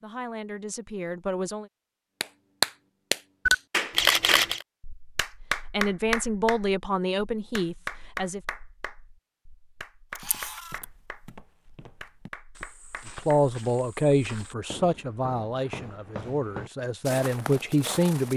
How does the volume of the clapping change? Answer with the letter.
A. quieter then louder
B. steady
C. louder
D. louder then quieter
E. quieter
E.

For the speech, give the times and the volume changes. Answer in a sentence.
You can hear the speech briefly from 0.0 to 1.6 s; briefly from 5.7 to 8.4 s; and from 13.2 to 18.3 s, getting quieter then louder.